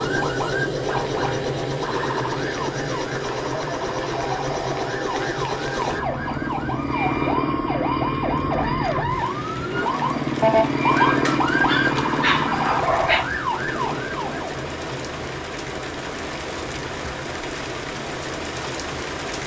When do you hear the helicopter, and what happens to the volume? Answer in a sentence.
The helicopter can be heard from 0.0 to 19.4 s, getting quieter.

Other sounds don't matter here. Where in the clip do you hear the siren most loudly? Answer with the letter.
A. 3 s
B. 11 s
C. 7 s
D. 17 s
B.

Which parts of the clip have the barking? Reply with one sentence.
You can hear the barking from 10.9 to 13.2 s.